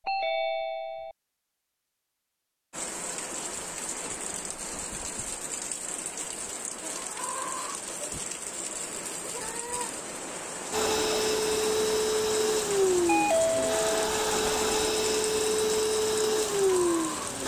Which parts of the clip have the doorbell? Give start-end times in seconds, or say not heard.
0.1-1.1, 13.1-13.9.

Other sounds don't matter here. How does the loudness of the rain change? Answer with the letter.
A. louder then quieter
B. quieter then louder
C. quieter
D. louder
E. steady
E.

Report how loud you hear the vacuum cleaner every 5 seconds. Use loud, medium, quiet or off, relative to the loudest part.
off, off, loud, loud.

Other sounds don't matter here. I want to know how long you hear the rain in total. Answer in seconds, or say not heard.
15 s.